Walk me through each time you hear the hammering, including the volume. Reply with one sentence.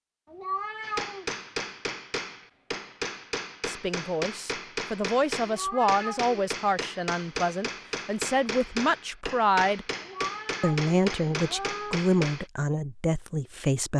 The hammering can be heard from 0.8 to 12.4 s, at a steady volume.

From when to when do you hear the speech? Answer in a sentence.
You can hear the speech from 3.6 to 9.8 s and from 10.6 to 13.9 s.